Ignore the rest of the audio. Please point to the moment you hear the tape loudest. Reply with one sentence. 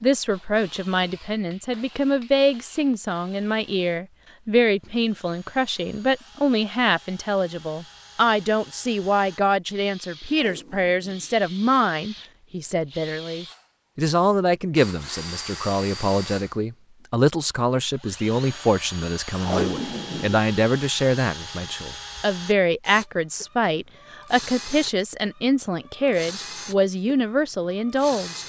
The volume of the tape peaks at 20 seconds.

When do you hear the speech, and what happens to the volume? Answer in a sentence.
The speech can be heard from 0.0 to 28.4 s, at a steady volume.